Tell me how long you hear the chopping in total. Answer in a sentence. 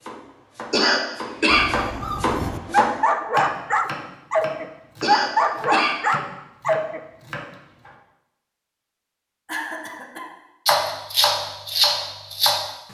You can hear the chopping for 10 seconds altogether.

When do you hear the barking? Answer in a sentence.
The barking can be heard from 1.5 to 7.0 s.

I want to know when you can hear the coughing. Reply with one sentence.
The coughing can be heard from 0.7 to 1.7 s, from 5.0 to 6.0 s and from 9.4 to 10.3 s.